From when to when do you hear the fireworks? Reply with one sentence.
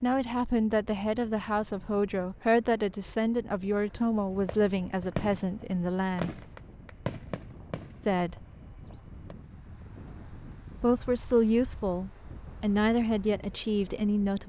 The fireworks can be heard from 4.3 to 9.3 s.